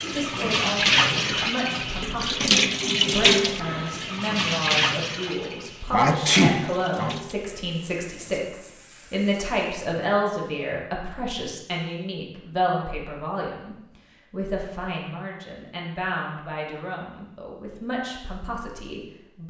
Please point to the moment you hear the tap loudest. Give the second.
3 s.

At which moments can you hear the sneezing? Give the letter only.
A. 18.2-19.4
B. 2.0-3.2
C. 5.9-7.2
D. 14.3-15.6
C.